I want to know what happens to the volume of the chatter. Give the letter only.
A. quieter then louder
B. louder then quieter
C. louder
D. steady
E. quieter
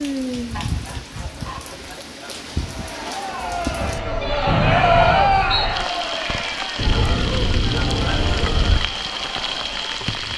B.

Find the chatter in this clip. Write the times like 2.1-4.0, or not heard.
2.5-10.3.